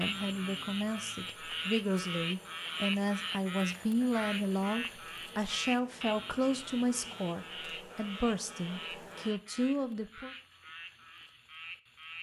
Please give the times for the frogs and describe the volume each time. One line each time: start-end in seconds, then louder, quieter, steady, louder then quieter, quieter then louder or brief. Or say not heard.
0.0-12.1 quieter.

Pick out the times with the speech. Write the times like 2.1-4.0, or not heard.
0.0-10.3.